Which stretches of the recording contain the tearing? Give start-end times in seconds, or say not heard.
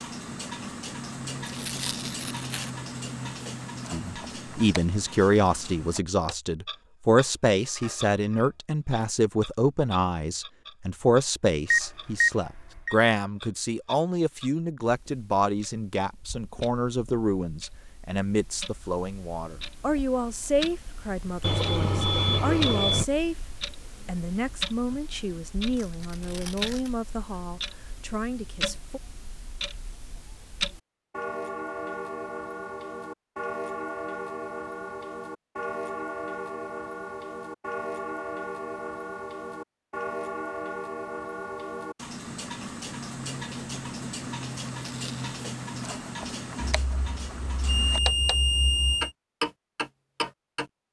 1.4-2.7, 25.8-26.9, 44.8-45.4.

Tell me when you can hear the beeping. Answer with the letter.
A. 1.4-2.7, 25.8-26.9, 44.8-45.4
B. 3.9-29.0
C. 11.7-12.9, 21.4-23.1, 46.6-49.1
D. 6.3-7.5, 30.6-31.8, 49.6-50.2
C.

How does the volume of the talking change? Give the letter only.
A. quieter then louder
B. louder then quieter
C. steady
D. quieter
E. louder
D.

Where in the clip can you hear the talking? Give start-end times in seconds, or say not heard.
3.9-29.0.